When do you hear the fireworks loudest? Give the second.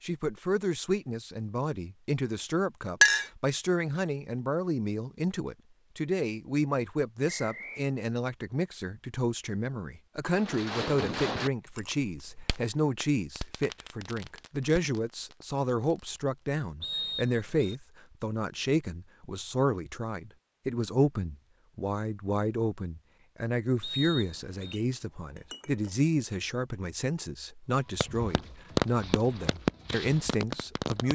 29 s.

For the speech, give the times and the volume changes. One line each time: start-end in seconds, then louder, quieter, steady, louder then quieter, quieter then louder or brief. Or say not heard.
0.0-31.1 steady.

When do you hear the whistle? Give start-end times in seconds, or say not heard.
7.2-7.8, 16.8-17.8, 23.8-24.8.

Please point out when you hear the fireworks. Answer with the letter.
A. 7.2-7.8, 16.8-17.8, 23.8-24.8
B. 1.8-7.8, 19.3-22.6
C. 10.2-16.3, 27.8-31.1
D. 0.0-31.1
C.